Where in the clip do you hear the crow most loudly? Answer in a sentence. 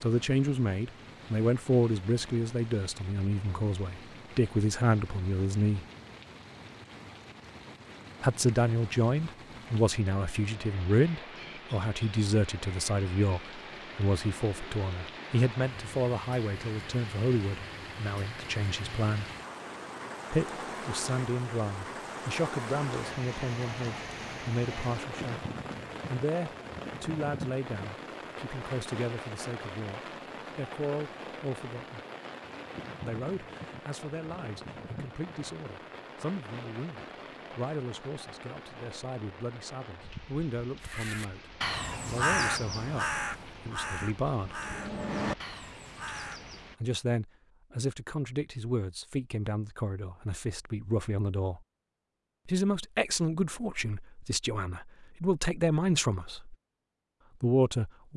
The loudest moment of the crow is at 42 seconds.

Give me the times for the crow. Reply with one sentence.
You can hear the crow from 40.9 to 46.6 s.